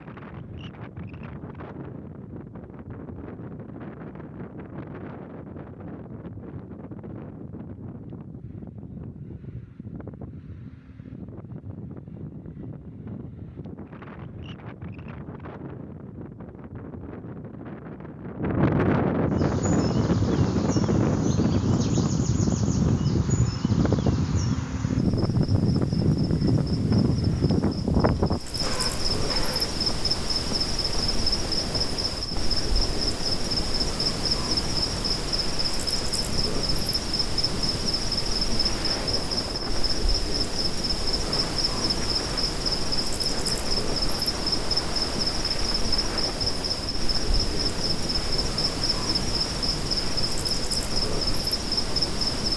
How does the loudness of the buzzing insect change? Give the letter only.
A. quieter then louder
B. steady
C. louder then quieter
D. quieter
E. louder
E.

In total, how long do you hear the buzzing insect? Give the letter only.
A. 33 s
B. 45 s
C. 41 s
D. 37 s
A.